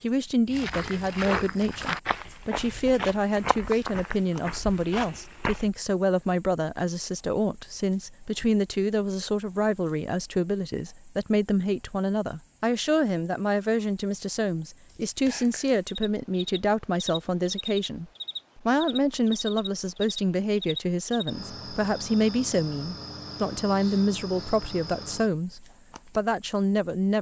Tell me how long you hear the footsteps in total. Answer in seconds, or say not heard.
5 s.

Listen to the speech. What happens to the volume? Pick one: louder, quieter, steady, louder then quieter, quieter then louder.
steady.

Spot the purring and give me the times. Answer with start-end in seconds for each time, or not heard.
not heard.